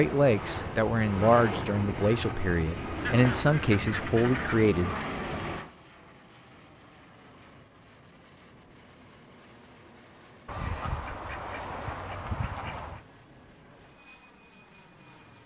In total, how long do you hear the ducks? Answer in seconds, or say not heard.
4 s.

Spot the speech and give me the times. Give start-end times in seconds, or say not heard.
0.0-5.4.